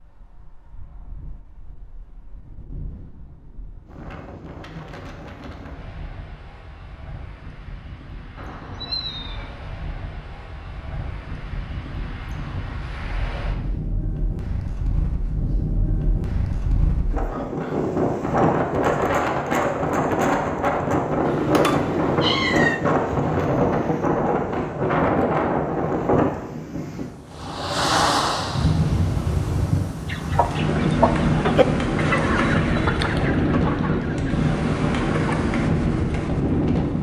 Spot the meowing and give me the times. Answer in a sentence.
The meowing can be heard from 8.3 to 9.6 s and from 21.2 to 22.8 s.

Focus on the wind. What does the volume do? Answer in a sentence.
The loudness of the wind goes up.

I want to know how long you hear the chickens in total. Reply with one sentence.
You can hear the chickens for 5 seconds altogether.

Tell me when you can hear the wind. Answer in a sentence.
The wind can be heard from 0.0 to 36.9 s.